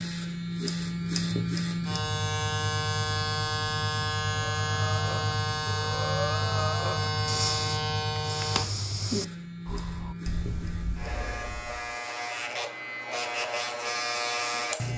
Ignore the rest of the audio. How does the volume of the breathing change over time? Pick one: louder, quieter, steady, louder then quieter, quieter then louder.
quieter.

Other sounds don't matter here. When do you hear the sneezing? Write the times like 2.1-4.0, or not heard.
not heard.